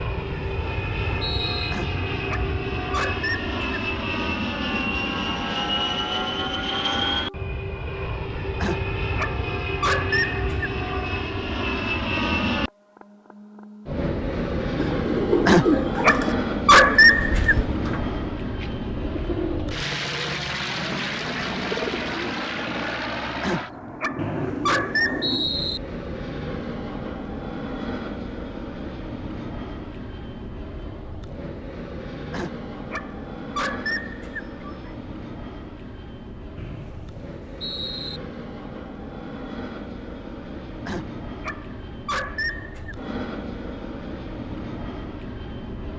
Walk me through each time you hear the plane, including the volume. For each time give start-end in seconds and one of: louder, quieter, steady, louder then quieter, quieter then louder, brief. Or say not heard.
0.0-45.9 quieter.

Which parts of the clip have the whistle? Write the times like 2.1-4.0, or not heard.
0.1-1.8, 24.1-25.8, 36.5-38.2.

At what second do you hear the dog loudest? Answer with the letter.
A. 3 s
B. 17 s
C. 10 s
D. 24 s
B.